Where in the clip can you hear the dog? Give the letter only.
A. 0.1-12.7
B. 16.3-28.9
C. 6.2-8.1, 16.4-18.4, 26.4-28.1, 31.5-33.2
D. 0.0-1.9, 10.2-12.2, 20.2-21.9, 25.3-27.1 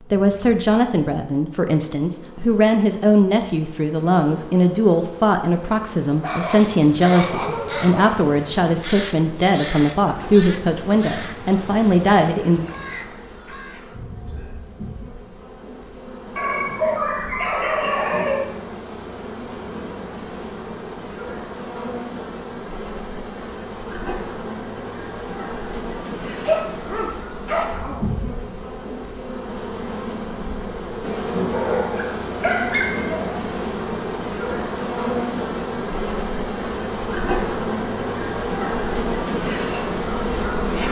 C.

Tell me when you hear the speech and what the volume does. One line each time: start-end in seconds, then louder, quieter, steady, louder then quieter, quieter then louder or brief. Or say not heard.
0.1-12.7 steady.